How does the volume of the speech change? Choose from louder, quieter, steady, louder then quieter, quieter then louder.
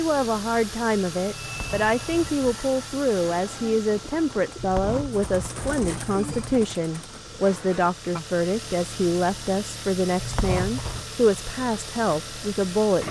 steady.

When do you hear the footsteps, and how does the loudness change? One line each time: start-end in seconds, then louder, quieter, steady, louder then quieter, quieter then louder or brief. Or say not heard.
not heard.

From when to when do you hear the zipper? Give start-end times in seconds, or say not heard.
1.4-2.4, 4.5-6.7, 10.2-11.1.